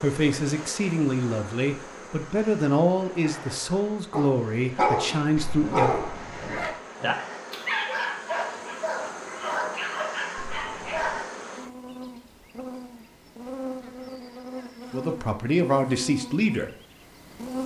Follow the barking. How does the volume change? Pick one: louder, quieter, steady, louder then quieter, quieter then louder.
quieter.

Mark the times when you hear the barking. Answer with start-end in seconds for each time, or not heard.
4.1-11.2.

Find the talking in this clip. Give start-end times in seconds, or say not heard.
0.0-6.0, 14.9-16.7.